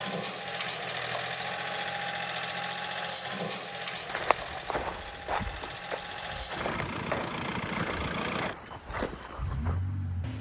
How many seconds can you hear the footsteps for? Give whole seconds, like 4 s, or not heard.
6 s.